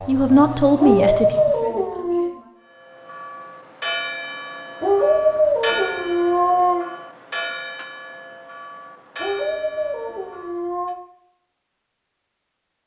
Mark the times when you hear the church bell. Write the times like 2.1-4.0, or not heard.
2.6-10.9.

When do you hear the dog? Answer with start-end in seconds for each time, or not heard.
0.8-2.3, 4.8-6.8, 9.2-11.0.